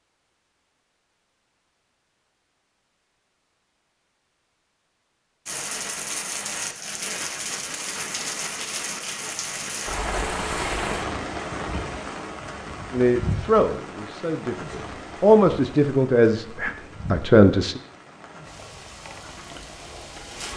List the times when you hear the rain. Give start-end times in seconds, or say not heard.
5.5-20.5.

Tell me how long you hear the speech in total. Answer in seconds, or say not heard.
5 s.